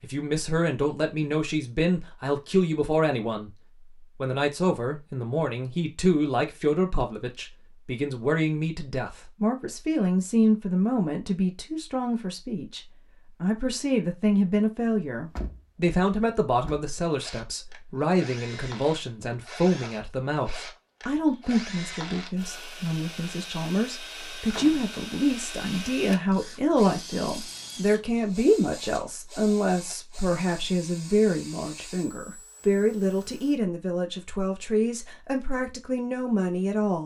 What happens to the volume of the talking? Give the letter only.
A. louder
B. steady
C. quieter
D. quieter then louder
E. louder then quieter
B.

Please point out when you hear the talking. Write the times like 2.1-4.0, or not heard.
0.0-3.5, 4.2-12.8, 13.4-37.0.